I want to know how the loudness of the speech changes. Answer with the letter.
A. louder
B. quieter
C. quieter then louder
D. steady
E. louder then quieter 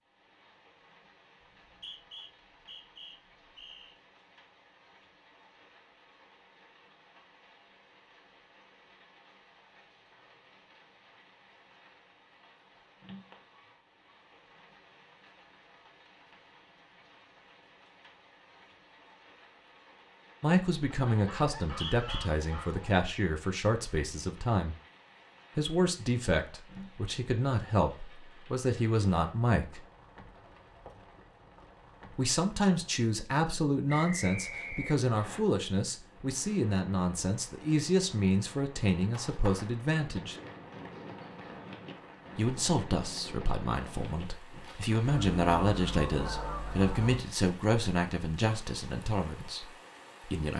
D.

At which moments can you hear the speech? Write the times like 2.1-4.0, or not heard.
20.4-24.8, 25.6-29.8, 32.1-40.4, 42.4-50.5.